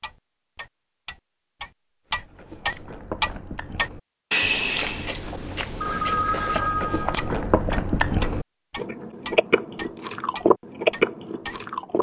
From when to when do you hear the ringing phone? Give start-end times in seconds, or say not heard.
5.8-7.2.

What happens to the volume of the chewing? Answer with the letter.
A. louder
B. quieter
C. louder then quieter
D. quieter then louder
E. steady
A.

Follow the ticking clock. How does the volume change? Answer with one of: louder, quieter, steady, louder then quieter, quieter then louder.
louder then quieter.